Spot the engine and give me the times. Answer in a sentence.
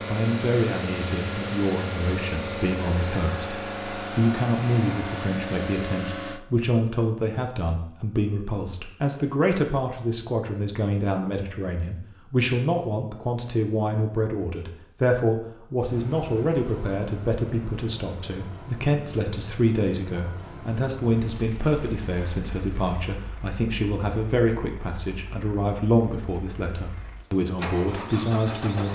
You can hear the engine from 0.0 to 6.4 s and from 15.8 to 28.9 s.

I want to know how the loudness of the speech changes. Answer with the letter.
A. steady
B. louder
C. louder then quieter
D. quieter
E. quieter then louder
A.